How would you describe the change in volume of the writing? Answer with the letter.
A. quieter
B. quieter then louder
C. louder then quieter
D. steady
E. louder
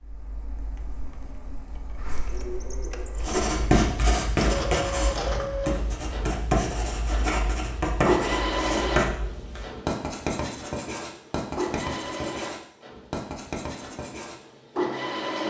A.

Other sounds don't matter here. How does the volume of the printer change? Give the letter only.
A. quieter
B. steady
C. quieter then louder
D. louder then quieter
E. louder
D.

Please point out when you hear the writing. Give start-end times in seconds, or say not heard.
3.2-14.4.